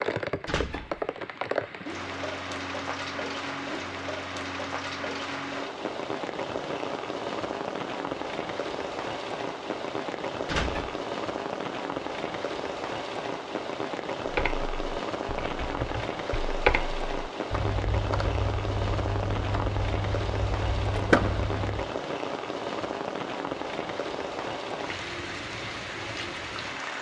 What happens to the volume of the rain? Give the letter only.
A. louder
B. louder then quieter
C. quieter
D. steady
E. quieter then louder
D.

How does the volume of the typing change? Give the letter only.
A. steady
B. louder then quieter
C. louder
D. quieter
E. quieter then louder
B.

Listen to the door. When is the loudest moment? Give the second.
21 s.